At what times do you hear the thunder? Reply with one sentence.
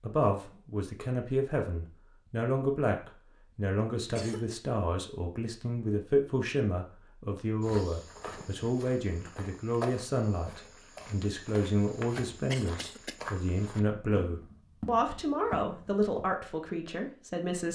The thunder can't be heard in this clip.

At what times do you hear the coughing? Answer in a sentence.
You can hear the coughing from 4.0 to 4.5 s and from 12.4 to 13.2 s.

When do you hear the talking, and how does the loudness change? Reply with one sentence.
You can hear the talking from 0.0 to 17.6 s, at a steady volume.